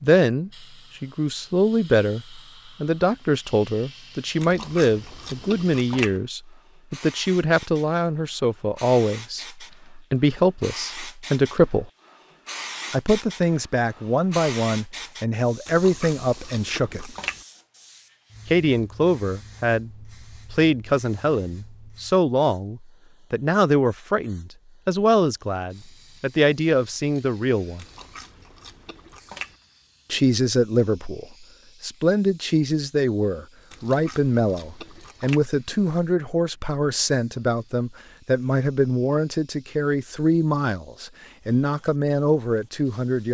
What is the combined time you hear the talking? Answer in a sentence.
The talking can be heard for 39 seconds in total.